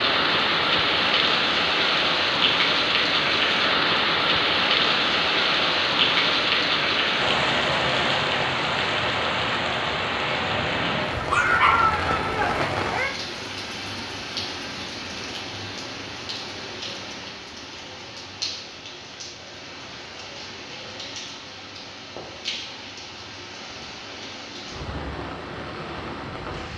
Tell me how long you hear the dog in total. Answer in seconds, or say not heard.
2 s.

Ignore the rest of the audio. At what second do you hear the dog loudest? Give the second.
12 s.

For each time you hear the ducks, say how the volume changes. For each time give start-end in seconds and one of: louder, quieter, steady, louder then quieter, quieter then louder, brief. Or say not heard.
not heard.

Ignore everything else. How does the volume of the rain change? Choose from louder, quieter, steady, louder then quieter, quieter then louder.
quieter.